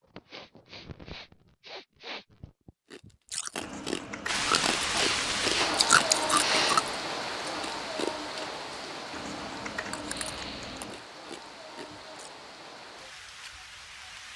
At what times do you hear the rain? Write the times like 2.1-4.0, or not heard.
4.2-14.3.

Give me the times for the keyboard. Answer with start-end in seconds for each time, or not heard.
3.6-5.7, 9.1-11.1.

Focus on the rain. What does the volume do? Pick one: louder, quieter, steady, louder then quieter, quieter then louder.
quieter.